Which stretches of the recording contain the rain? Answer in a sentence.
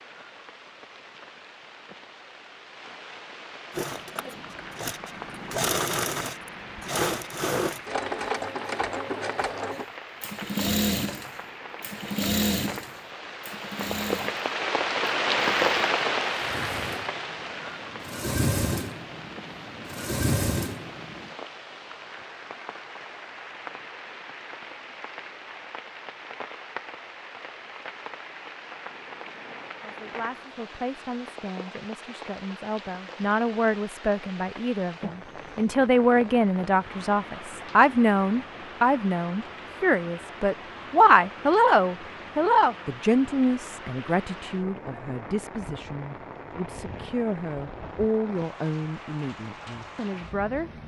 You can hear the rain from 0.0 to 50.8 s.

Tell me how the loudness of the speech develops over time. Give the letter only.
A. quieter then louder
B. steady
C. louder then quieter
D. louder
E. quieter
C.